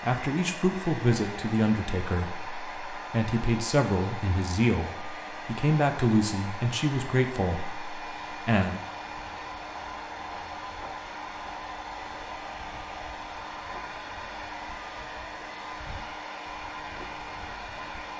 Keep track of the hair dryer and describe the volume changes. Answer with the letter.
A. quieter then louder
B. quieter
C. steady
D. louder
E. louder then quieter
C.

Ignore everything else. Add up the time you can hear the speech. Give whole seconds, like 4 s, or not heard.
9 s.